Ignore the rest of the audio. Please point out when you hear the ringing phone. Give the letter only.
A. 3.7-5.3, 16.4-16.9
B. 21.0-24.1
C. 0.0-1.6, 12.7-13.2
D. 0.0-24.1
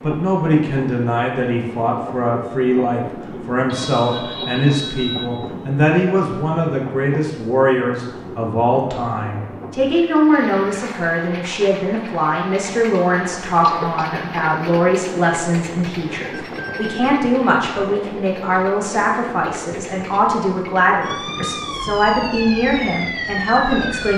A.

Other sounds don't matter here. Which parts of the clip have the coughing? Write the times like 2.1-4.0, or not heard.
13.6-14.4.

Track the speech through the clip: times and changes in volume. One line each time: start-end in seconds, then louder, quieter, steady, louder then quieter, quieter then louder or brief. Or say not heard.
0.0-24.1 steady.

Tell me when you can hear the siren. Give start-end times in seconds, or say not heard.
21.0-24.1.